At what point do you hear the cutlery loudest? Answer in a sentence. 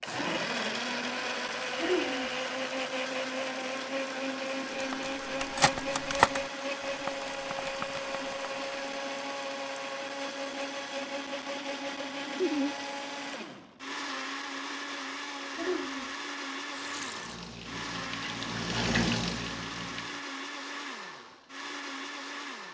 The loudest moment of the cutlery is at 6 seconds.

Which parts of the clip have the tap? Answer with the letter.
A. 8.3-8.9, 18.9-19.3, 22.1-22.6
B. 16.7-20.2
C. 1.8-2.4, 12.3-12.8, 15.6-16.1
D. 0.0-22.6
B.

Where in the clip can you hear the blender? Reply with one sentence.
You can hear the blender from 0.0 to 22.6 s.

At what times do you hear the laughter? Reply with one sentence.
You can hear the laughter from 1.8 to 2.4 s, from 12.3 to 12.8 s and from 15.6 to 16.1 s.